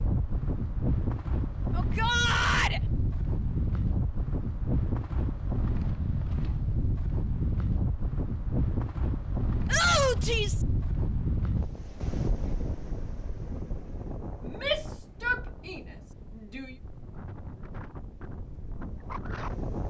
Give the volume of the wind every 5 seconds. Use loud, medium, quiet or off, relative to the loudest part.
loud, loud, loud, medium.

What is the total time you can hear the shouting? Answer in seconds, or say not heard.
4 s.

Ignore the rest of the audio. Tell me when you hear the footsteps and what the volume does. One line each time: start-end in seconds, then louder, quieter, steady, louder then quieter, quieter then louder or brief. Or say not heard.
not heard.